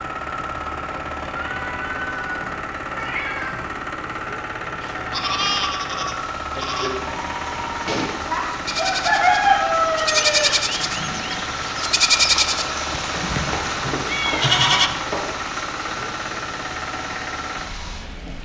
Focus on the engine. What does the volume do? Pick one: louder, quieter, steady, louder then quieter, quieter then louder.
steady.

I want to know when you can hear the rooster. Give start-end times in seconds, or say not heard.
8.8-10.6.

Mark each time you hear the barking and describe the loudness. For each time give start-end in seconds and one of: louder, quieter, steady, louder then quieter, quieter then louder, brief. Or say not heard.
not heard.